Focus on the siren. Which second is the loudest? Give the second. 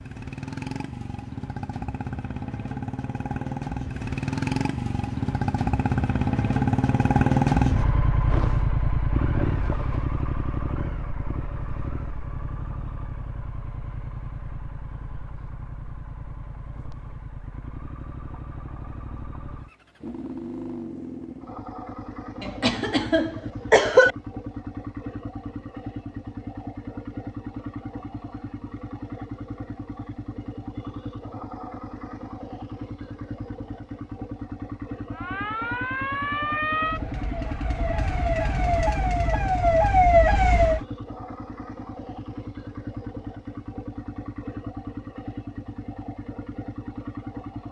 40 s.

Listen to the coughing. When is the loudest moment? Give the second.
24 s.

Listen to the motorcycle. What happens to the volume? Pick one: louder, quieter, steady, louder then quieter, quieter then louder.
quieter.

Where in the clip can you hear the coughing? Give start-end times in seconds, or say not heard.
22.4-24.1.